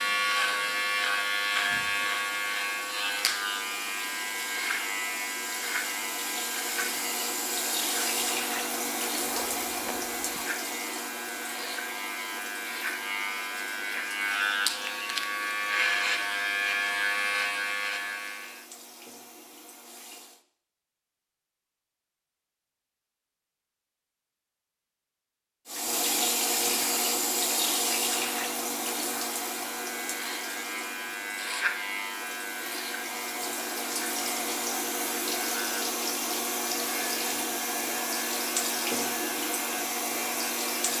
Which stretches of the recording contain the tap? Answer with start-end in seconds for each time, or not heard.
0.0-20.4, 25.6-40.9.